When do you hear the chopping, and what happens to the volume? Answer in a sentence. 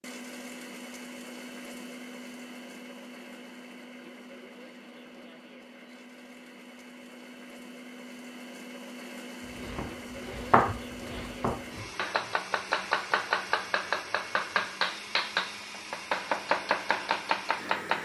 The chopping can be heard from 9.5 to 17.9 s, at a steady volume.